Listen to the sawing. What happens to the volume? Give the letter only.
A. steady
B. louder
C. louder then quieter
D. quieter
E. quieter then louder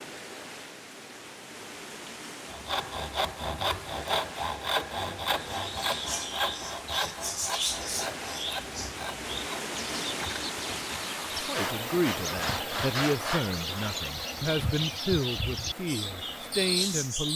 E.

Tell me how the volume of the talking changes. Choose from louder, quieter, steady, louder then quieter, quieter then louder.
steady.